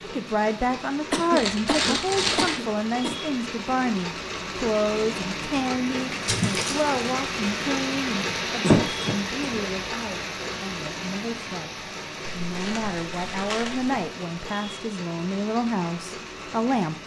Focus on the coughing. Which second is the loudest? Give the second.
9 s.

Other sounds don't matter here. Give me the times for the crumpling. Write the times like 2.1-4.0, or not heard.
1.4-2.6, 6.2-6.8, 12.3-14.0.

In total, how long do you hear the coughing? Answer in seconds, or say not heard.
3 s.